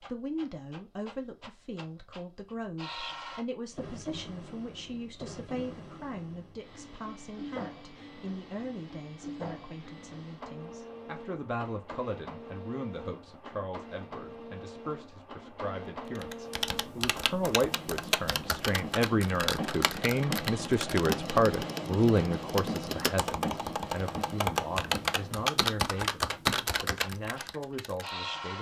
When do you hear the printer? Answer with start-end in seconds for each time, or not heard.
0.0-28.5.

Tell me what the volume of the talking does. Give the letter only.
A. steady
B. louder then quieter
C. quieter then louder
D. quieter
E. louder
B.